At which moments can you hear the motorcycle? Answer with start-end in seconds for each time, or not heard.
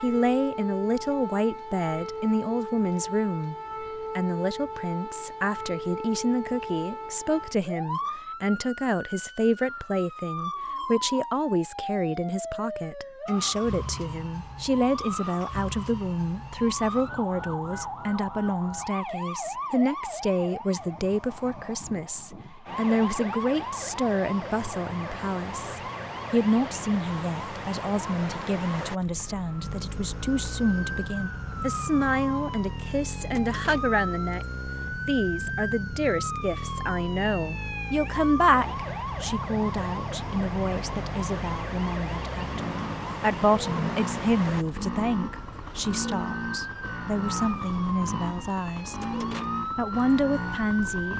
29.6-51.1.